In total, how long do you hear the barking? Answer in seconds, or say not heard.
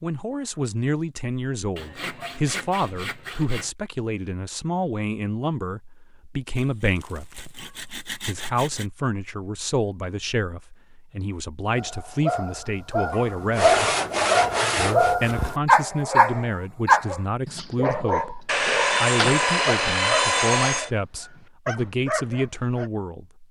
11 s.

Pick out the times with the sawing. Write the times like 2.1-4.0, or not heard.
1.8-3.7, 6.5-8.9, 13.1-15.2, 18.4-20.9.